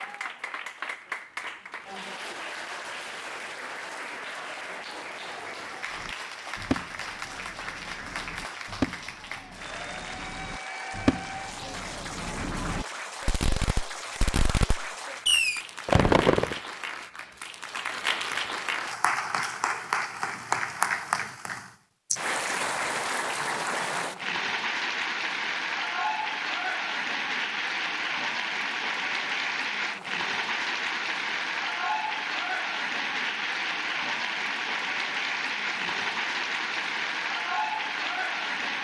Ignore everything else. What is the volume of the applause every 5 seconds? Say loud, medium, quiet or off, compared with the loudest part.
medium, medium, medium, loud, loud, loud, loud, loud.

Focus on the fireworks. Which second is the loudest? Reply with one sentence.
The loudest moment of the fireworks is at 16 seconds.